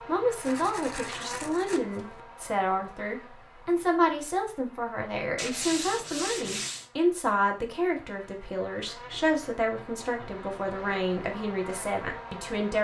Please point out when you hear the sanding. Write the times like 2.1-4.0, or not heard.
0.5-2.2, 5.3-6.9, 8.8-10.9.